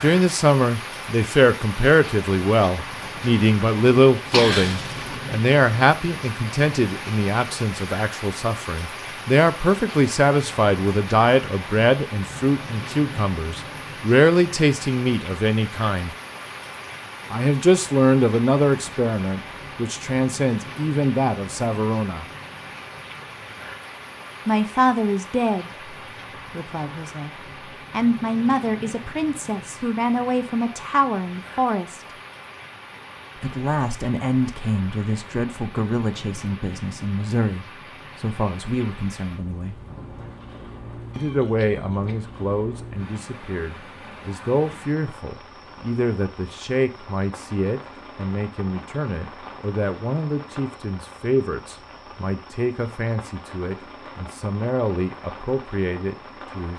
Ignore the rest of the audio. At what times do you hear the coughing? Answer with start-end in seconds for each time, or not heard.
4.3-5.0, 41.1-42.2.